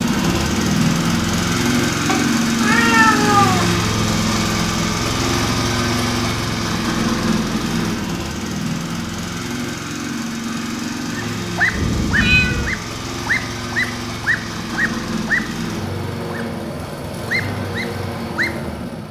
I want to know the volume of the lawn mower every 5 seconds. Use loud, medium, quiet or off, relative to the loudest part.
loud, loud, medium, medium.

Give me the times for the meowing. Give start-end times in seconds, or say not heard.
2.0-3.8, 11.8-12.8.